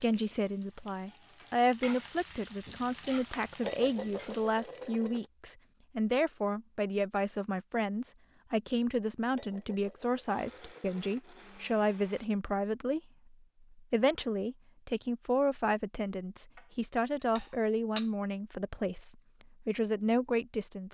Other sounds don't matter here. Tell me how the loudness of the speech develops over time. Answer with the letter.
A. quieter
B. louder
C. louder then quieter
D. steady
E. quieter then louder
D.